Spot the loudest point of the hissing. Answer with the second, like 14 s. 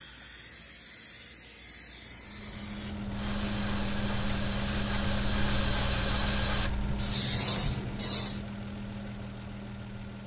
8 s.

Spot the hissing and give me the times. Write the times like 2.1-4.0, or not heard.
0.0-8.4.